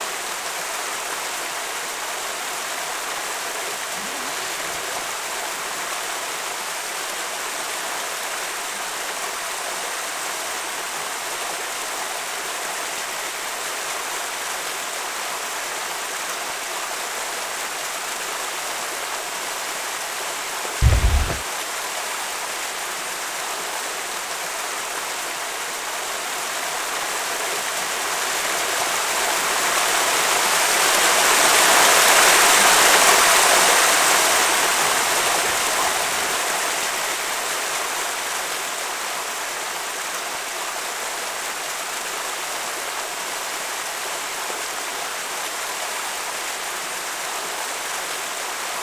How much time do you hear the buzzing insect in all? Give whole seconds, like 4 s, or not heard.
not heard.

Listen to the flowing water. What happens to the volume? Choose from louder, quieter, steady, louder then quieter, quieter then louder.
louder then quieter.